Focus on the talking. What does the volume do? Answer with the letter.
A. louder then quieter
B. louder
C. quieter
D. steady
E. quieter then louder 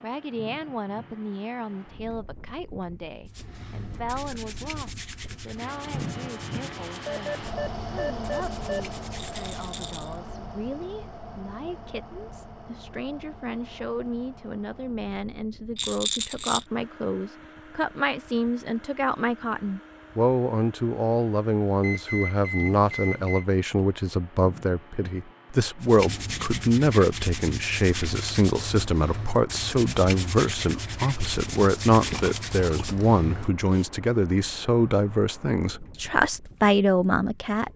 B.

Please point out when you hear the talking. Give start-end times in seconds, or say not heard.
0.0-37.7.